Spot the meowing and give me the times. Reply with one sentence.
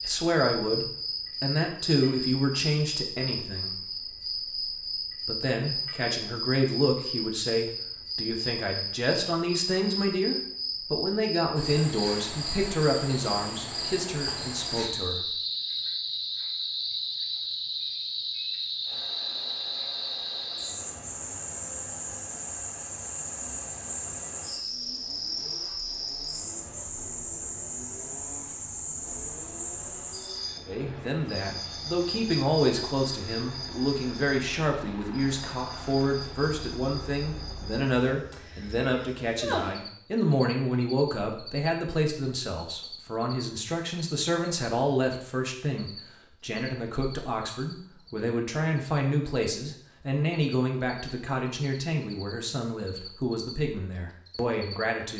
You can hear the meowing from 38.3 to 39.9 s.